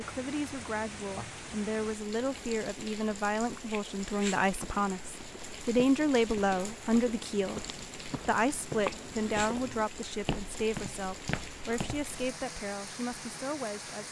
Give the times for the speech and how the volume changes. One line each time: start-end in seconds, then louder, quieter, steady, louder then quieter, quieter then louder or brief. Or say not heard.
0.0-14.0 louder then quieter.